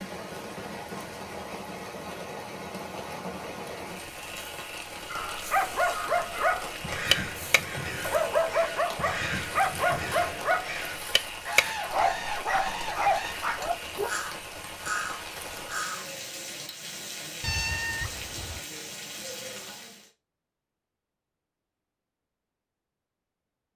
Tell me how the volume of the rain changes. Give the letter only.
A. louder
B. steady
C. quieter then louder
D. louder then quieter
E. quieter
B.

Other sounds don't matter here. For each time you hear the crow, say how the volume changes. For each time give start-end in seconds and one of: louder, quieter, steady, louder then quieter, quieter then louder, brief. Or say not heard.
5.0-16.1 steady.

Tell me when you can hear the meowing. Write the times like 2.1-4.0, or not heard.
17.4-18.6.